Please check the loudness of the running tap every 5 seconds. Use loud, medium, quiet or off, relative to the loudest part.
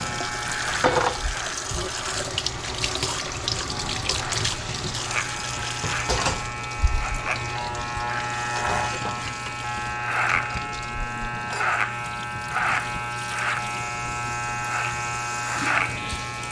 loud, medium, quiet, medium.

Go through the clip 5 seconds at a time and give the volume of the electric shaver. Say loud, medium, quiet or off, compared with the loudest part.
medium, loud, loud, loud.